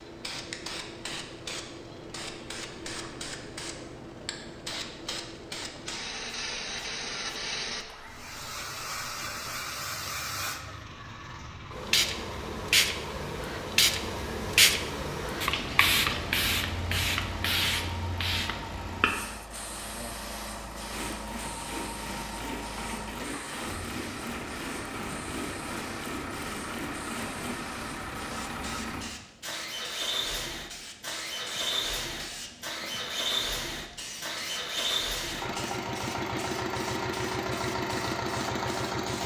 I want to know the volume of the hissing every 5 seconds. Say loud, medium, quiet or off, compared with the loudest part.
medium, medium, loud, loud, quiet, quiet, quiet, quiet.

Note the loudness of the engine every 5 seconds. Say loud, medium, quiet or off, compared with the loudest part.
quiet, quiet, quiet, medium, medium, medium, loud, loud.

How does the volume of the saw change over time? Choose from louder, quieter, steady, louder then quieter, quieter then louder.
steady.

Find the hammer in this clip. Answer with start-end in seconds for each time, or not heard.
not heard.